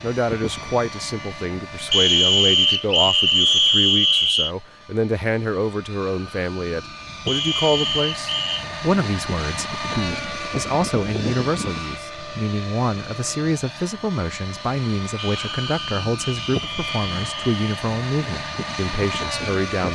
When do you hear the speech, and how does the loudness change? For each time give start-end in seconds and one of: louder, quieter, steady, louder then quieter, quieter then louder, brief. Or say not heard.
0.0-19.9 steady.